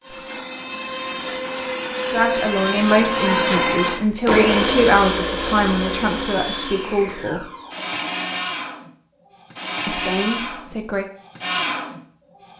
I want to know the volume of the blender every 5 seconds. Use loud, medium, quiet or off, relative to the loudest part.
loud, medium, medium.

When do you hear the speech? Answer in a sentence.
The speech can be heard from 2.1 to 7.5 s and from 9.8 to 11.1 s.